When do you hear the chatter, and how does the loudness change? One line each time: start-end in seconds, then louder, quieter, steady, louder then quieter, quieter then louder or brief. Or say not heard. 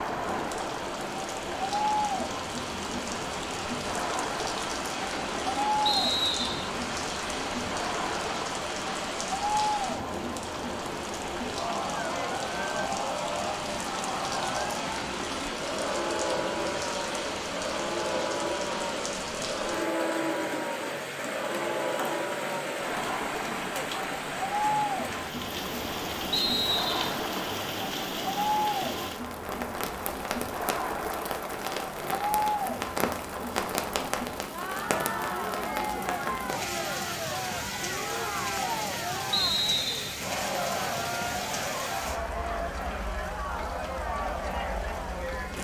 0.0-45.5 steady.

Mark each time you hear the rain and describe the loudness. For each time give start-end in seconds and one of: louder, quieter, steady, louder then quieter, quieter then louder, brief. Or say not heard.
0.0-45.5 steady.